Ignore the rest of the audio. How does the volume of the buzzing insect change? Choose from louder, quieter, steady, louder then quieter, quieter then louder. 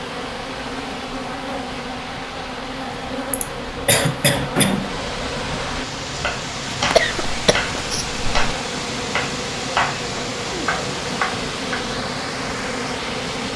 steady.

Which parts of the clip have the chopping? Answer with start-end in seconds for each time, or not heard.
6.0-11.8.